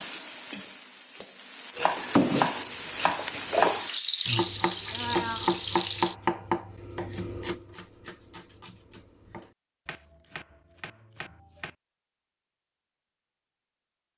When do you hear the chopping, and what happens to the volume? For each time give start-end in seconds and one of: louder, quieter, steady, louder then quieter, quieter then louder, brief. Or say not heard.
1.8-11.8 quieter.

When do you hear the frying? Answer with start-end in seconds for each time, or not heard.
0.0-6.2.